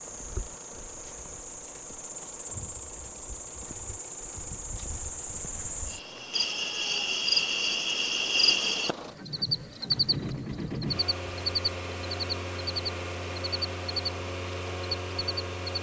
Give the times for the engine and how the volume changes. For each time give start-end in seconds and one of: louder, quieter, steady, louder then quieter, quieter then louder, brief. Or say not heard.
0.0-15.7 louder.